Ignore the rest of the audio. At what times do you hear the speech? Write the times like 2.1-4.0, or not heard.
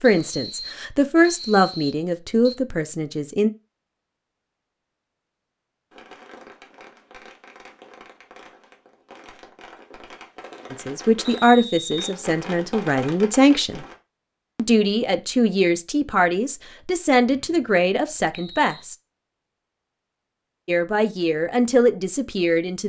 0.0-3.5, 10.7-13.8, 14.6-18.9, 20.6-22.8.